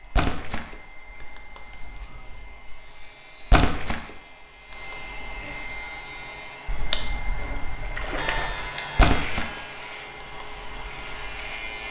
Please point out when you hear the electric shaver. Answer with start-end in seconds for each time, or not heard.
0.0-6.5, 8.2-11.8.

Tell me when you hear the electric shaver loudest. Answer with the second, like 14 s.
9 s.